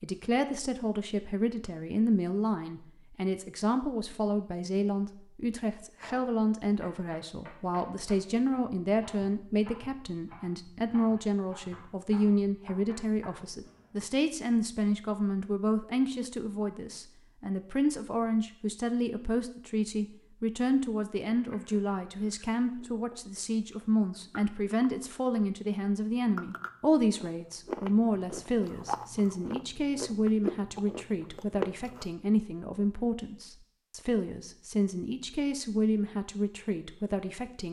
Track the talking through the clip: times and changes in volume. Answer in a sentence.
The talking can be heard from 0.0 to 37.6 s, at a steady volume.